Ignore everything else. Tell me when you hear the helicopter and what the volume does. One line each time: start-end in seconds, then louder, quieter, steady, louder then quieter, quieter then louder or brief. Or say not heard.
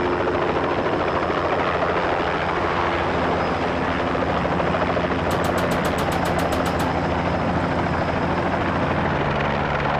0.0-9.9 steady.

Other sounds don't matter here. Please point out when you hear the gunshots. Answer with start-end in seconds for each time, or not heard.
5.3-6.9.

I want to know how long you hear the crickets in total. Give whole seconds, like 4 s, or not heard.
not heard.